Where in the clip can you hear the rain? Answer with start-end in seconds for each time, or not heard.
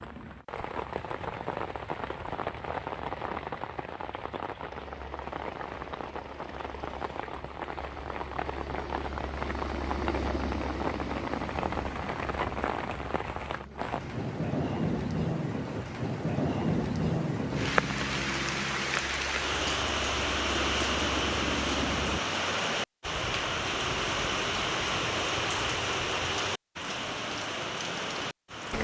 0.0-28.7.